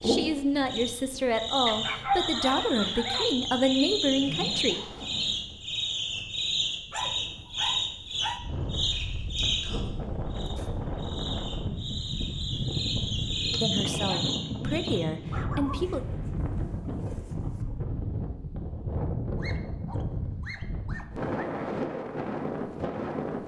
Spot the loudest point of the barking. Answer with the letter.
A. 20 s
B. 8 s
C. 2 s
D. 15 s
C.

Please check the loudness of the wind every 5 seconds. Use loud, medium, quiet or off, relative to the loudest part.
quiet, medium, loud, loud, loud.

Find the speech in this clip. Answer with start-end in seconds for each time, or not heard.
0.0-4.8, 13.5-16.1.